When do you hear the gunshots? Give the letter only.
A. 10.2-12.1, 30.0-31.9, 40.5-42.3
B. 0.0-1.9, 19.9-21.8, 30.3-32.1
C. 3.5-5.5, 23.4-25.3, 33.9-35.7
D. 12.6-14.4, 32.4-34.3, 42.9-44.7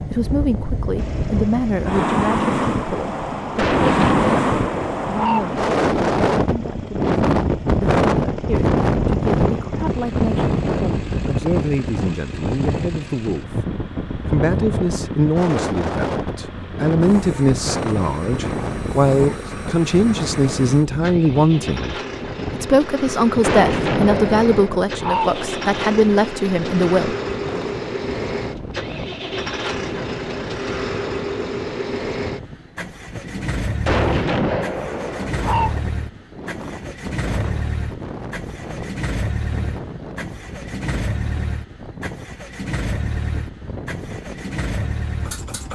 C.